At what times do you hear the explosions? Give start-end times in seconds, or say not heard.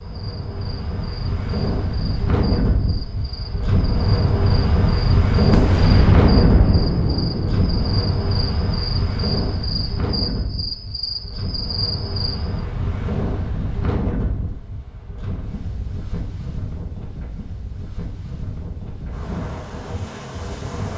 5.5-8.3.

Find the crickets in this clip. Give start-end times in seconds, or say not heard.
0.0-12.6.